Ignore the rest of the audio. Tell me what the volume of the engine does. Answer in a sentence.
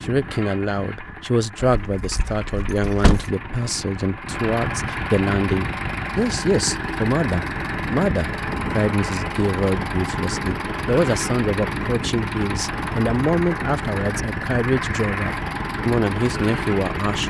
The volume of the engine goes up.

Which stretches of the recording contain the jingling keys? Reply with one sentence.
The jingling keys can be heard from 1.8 to 3.3 s.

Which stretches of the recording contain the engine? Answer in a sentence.
The engine can be heard from 0.0 to 17.2 s.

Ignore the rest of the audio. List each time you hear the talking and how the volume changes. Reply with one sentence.
The talking can be heard from 0.0 to 17.2 s, at a steady volume.